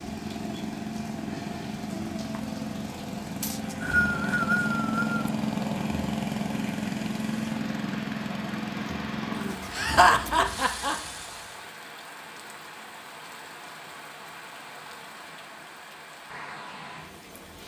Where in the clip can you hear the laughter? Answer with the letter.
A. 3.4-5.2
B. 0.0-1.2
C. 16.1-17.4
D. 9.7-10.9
D.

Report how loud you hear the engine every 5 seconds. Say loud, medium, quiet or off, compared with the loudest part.
loud, loud, medium, off.